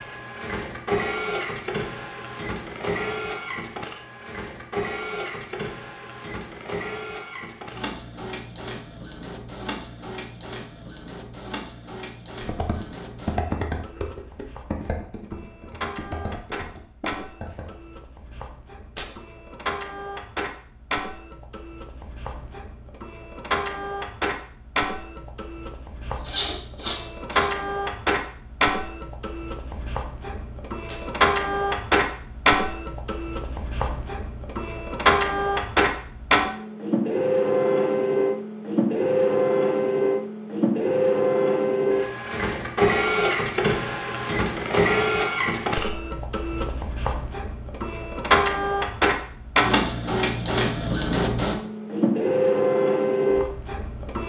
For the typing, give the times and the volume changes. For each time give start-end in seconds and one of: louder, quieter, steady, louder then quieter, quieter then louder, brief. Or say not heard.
12.4-18.1 quieter.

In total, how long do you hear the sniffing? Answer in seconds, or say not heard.
2 s.